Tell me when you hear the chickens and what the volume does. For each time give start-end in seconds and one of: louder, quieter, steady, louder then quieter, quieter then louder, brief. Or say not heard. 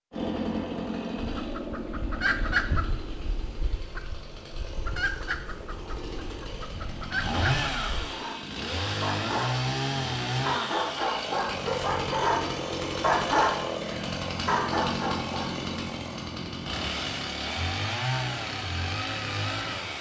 1.1-8.1 quieter then louder.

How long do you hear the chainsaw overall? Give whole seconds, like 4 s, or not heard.
20 s.